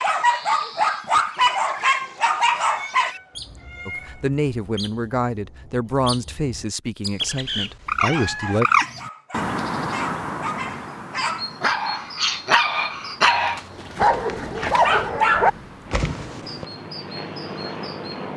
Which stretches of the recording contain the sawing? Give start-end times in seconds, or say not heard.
not heard.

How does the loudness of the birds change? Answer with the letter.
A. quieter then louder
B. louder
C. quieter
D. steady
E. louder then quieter
E.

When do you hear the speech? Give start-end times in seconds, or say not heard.
3.9-8.7.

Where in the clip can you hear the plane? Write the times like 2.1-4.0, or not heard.
15.3-18.3.